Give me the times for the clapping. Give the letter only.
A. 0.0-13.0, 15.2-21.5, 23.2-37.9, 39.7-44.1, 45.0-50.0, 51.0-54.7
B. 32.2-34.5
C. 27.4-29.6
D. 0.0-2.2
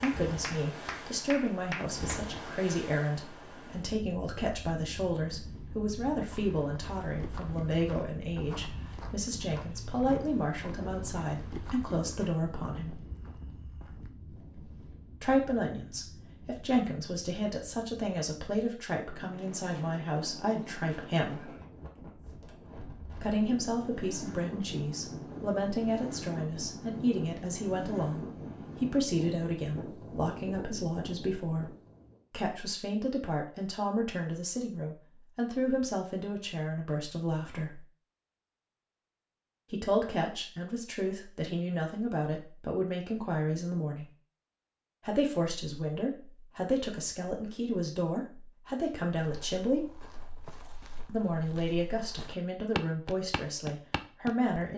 D.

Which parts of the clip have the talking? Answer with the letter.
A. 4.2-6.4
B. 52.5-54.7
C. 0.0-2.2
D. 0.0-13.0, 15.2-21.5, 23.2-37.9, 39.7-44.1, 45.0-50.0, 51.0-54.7
D.